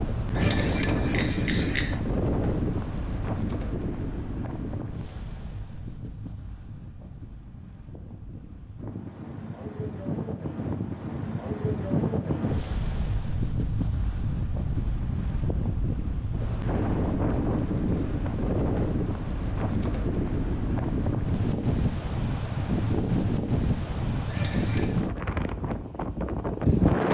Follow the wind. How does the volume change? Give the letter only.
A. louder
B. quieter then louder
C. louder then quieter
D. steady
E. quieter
B.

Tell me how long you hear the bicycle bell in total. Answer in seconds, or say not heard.
2 s.